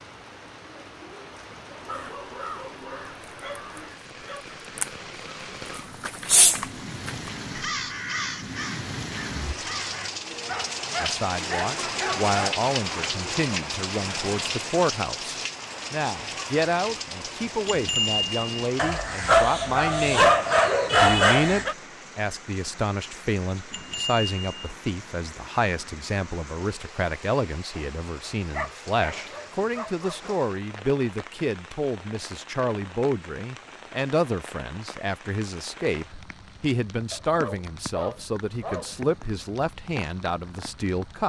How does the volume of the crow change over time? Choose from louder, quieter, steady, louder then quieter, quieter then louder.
louder then quieter.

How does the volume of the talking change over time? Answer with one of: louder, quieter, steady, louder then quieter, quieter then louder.
steady.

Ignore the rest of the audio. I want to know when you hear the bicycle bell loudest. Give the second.
18 s.